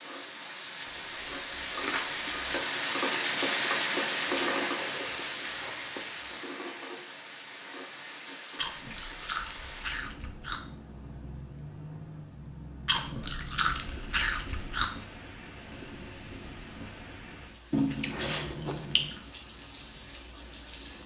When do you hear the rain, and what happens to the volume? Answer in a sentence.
You can hear the rain from 0.0 to 21.0 s, getting quieter.